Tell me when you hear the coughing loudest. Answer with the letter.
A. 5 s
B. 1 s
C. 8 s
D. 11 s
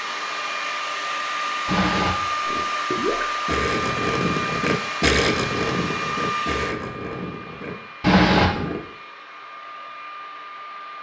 C.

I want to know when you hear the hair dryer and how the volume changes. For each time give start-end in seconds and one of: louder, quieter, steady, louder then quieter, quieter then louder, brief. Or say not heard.
0.0-10.9 quieter.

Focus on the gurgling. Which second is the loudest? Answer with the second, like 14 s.
5 s.